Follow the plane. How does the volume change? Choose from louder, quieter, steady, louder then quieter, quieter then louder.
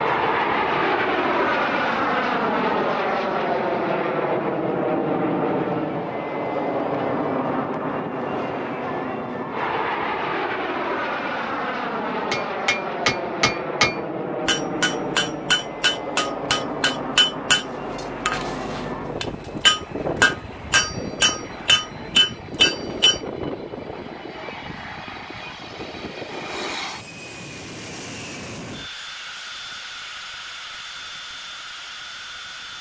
quieter.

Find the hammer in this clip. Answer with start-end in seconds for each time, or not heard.
12.3-23.2.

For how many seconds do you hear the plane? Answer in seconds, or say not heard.
33 s.